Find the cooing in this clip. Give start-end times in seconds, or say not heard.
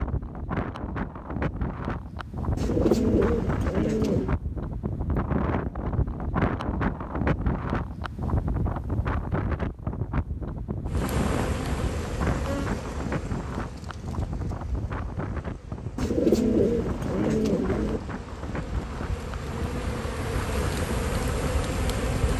2.5-4.3, 15.9-18.0.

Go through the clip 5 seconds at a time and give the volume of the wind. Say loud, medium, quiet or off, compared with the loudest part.
loud, loud, loud, medium, medium.